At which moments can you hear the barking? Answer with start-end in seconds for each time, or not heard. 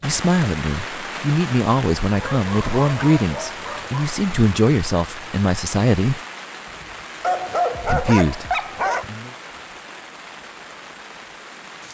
2.1-4.1, 7.2-9.1.